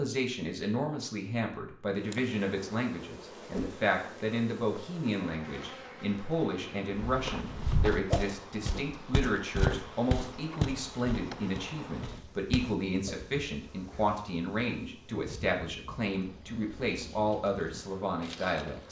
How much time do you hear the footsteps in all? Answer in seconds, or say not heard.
6 s.